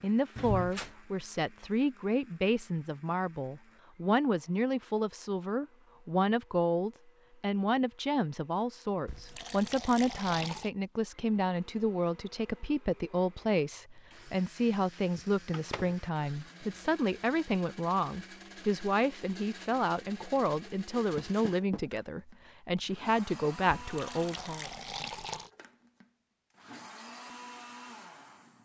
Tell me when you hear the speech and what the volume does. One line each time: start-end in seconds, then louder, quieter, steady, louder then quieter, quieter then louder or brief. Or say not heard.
0.0-24.7 steady.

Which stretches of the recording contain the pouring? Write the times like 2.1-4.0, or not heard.
9.1-10.7, 23.8-25.5.